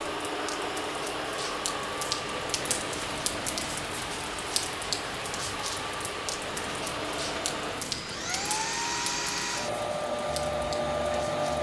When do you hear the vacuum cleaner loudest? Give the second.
11 s.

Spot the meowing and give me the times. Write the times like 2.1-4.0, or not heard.
2.2-4.0, 6.7-8.6.